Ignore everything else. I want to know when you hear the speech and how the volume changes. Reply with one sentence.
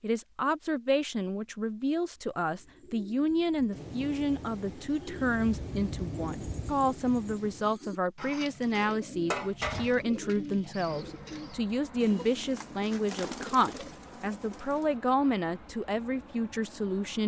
The speech can be heard from 0.0 to 17.2 s, at a steady volume.